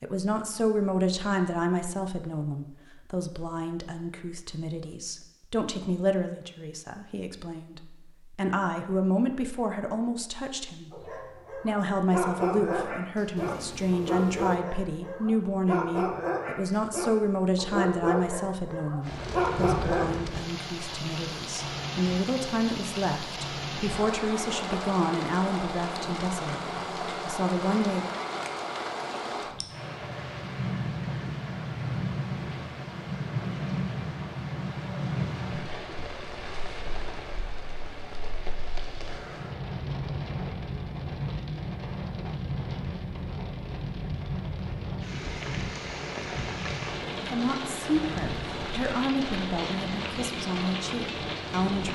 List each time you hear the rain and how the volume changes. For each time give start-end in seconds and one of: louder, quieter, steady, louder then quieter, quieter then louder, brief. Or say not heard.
19.0-51.9 steady.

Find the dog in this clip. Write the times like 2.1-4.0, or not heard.
10.9-20.1.